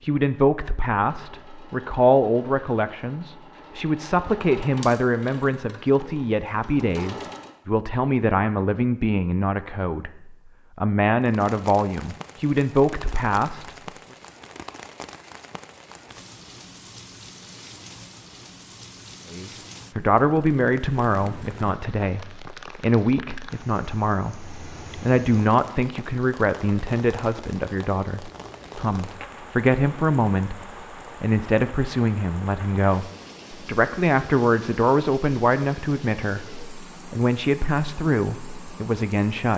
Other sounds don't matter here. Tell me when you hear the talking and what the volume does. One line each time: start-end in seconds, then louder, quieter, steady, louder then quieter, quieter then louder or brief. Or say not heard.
0.0-13.8 steady
19.3-39.5 steady.